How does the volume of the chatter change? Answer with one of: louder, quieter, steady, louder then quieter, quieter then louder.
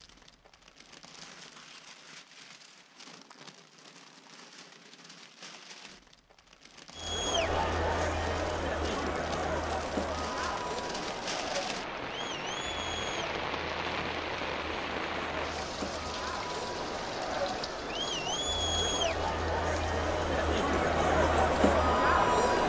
quieter then louder.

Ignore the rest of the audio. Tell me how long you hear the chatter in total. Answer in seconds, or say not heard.
16 s.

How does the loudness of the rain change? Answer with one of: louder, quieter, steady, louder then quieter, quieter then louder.
louder then quieter.